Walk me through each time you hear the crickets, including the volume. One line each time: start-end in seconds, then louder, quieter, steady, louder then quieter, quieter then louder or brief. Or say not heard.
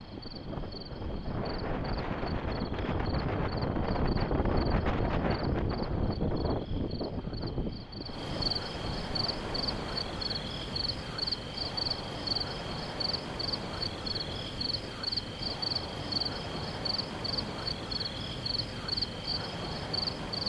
0.0-20.4 louder.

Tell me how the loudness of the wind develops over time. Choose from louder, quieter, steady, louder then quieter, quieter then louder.
quieter.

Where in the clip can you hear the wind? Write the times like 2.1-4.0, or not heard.
0.0-20.4.